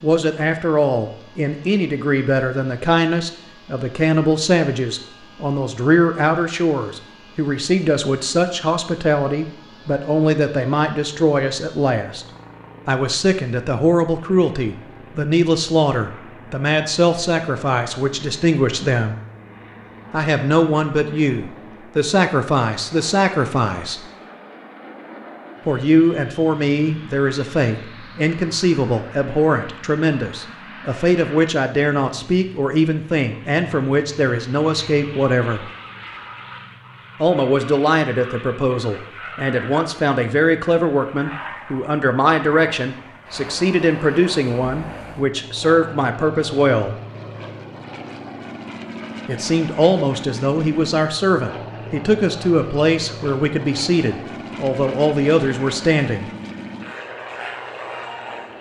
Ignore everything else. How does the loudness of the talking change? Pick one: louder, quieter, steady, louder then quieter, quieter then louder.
steady.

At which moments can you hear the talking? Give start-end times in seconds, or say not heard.
0.0-12.2, 12.8-19.1, 20.1-24.0, 25.6-35.6, 37.2-47.0, 49.2-56.2.